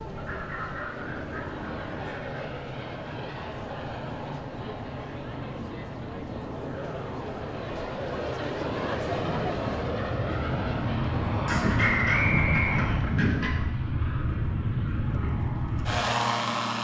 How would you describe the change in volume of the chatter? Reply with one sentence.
The loudness of the chatter goes up.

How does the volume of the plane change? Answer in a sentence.
The loudness of the plane goes up.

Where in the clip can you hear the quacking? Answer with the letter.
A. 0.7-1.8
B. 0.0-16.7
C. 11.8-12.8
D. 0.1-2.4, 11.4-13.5
D.